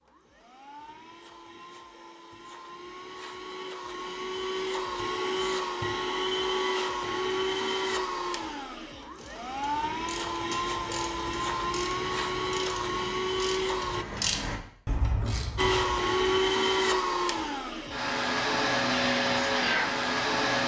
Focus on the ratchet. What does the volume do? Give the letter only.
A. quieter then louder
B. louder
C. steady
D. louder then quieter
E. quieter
B.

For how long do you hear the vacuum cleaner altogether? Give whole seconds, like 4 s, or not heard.
19 s.